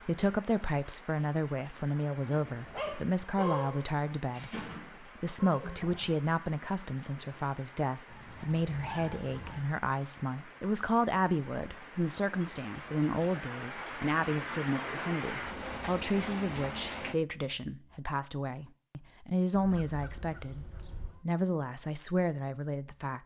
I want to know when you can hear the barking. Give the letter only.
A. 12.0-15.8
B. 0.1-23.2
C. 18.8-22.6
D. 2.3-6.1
D.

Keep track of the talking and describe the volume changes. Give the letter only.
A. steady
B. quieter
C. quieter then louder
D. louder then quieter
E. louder
A.